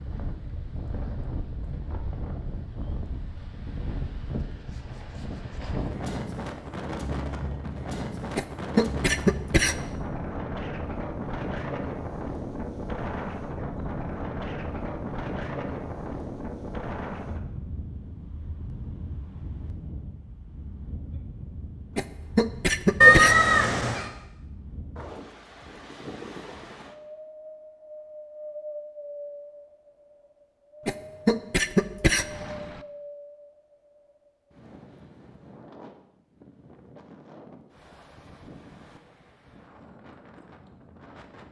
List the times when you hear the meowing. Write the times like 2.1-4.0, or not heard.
23.0-24.1.